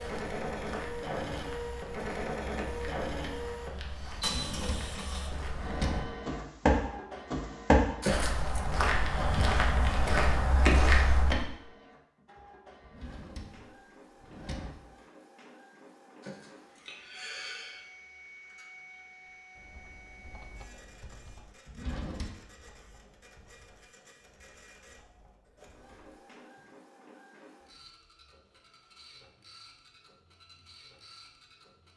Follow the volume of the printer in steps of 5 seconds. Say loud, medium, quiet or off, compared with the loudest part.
loud, medium, quiet, quiet, quiet, quiet, quiet.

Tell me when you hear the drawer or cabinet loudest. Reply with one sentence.
The volume of the drawer or cabinet peaks at 6 seconds.